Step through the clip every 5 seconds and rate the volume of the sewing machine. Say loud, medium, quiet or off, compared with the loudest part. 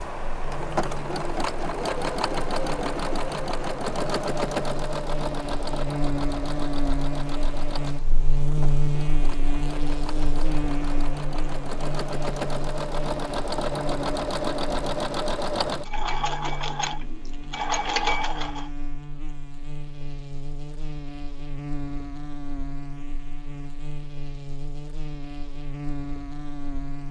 loud, medium, loud, loud, off, off.